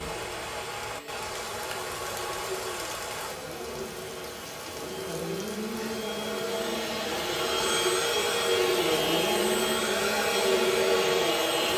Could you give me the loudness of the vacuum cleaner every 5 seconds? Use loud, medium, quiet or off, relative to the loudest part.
quiet, loud, loud.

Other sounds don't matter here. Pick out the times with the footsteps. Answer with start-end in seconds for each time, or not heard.
not heard.